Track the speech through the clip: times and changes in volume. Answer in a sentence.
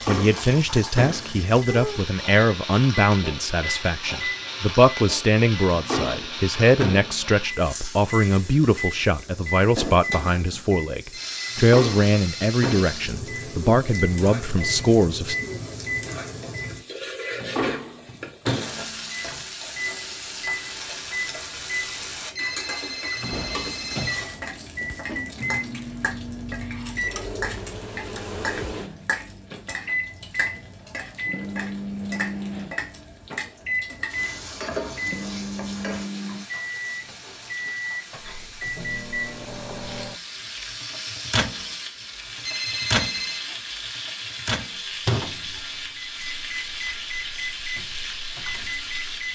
You can hear the speech from 0.1 to 15.3 s, at a steady volume.